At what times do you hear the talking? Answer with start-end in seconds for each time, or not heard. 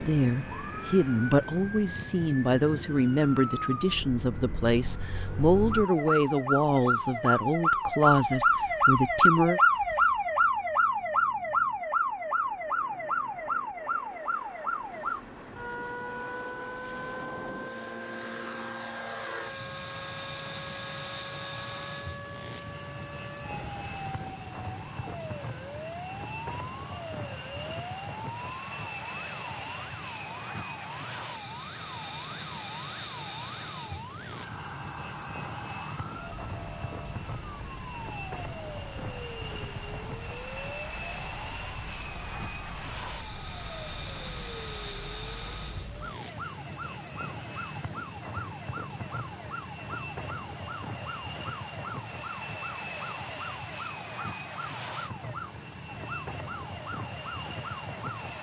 0.0-9.6.